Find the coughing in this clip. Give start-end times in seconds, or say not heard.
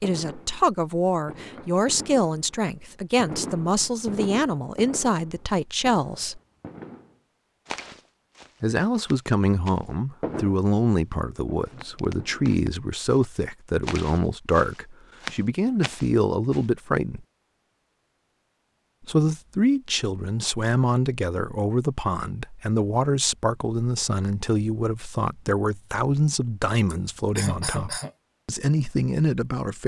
26.9-28.1.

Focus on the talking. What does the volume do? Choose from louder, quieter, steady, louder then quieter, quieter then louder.
steady.